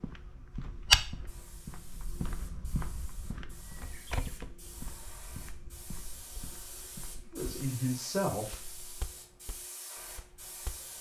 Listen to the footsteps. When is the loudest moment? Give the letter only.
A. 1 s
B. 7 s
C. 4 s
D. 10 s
A.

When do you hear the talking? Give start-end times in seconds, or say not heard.
7.3-8.8.